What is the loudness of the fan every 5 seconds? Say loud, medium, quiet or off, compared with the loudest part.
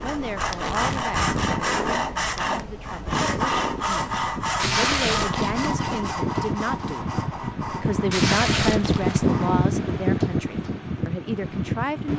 medium, loud, loud.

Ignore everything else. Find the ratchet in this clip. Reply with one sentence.
The ratchet can't be heard in this clip.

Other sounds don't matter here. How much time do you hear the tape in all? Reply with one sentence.
The tape can be heard for 3 seconds in total.